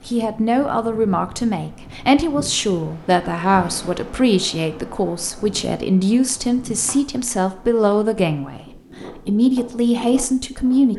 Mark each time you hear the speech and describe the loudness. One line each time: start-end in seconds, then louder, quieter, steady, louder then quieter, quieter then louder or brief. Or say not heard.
0.1-10.9 steady.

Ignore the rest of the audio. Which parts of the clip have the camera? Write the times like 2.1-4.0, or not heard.
not heard.